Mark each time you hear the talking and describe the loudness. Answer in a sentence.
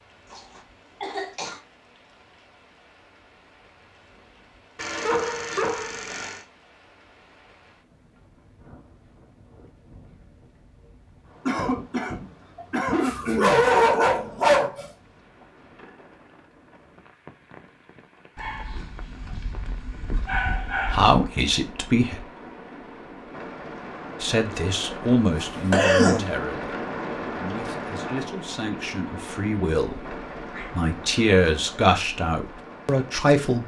The talking can be heard briefly from 20.8 to 22.2 s; and from 24.2 to 33.6 s, getting quieter then louder.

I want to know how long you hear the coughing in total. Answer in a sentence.
You can hear the coughing for 4 seconds altogether.